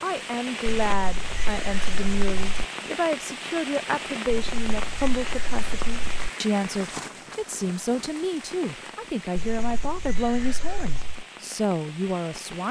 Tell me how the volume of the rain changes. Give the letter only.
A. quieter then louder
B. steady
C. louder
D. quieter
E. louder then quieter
D.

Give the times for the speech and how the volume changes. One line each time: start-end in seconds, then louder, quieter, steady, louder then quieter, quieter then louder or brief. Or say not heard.
0.0-12.6 steady.